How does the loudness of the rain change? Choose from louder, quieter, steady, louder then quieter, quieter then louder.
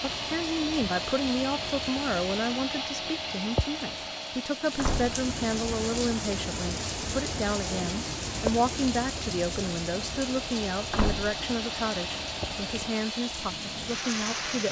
louder then quieter.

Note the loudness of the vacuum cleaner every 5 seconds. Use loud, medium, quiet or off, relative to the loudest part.
loud, medium, loud.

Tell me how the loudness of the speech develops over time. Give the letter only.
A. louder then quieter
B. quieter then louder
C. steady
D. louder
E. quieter
C.